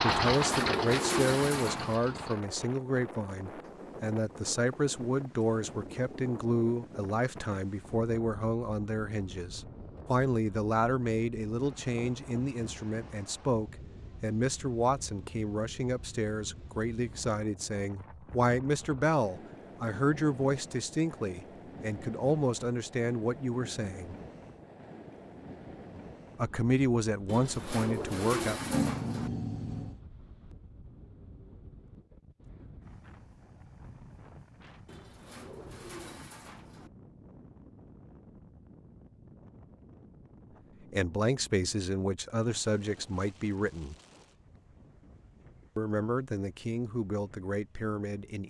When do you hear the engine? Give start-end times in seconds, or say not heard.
0.0-2.4.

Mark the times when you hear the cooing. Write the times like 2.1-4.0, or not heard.
0.1-2.0, 27.2-29.3, 34.9-36.9.